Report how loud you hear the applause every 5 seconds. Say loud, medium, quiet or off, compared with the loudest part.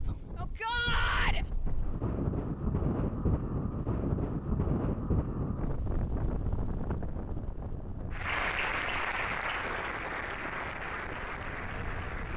off, loud, medium.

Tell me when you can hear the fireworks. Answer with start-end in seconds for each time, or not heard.
not heard.